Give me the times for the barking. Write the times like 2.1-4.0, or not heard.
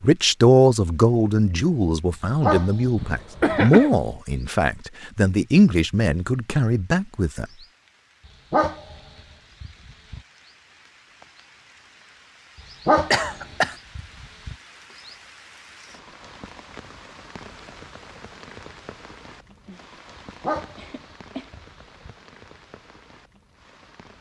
2.4-4.1, 8.5-9.0, 9.6-10.2, 12.8-14.6, 20.4-22.1.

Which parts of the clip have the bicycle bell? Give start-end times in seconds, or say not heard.
not heard.